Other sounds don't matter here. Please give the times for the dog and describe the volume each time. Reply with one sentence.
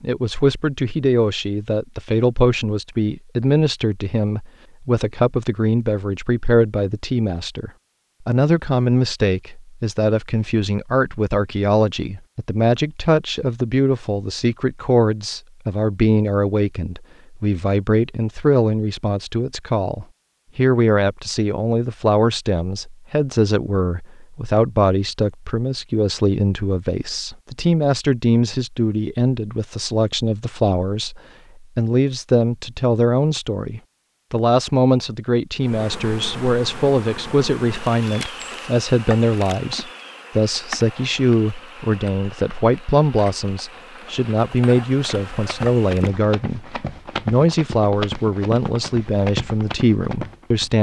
The dog can't be heard in this clip.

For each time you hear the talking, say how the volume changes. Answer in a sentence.
You can hear the talking from 0.0 to 50.7 s, at a steady volume.